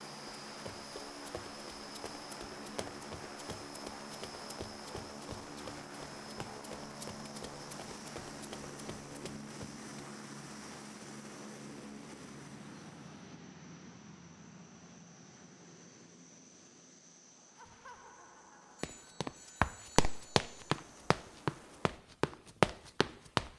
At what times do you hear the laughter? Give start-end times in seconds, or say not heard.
17.6-18.9.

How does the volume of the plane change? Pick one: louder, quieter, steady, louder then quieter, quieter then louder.
quieter.